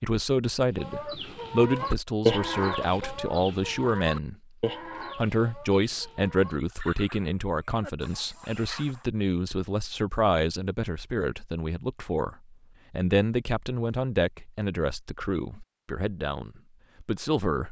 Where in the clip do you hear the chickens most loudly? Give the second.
2 s.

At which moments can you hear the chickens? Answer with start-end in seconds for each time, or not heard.
0.8-9.1.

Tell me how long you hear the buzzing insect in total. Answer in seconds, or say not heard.
not heard.